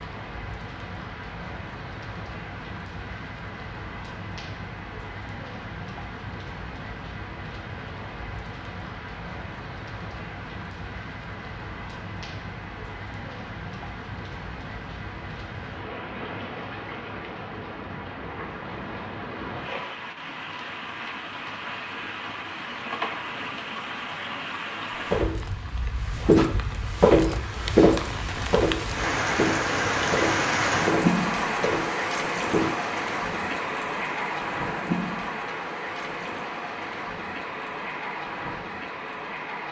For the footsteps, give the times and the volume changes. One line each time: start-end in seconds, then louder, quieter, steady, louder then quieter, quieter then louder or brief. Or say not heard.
24.9-25.5 brief
26.1-32.7 quieter.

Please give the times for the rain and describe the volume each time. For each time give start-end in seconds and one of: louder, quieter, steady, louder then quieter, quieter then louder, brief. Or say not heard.
0.0-39.6 louder.